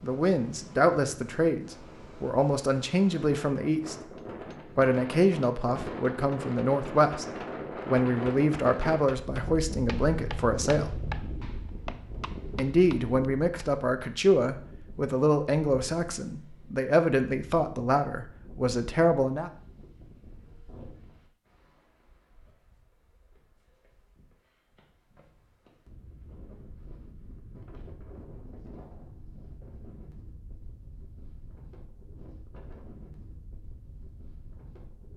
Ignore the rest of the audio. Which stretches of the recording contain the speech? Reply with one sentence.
The speech can be heard from 0.0 to 4.0 s, from 4.8 to 7.2 s, from 7.8 to 10.9 s and from 12.6 to 19.5 s.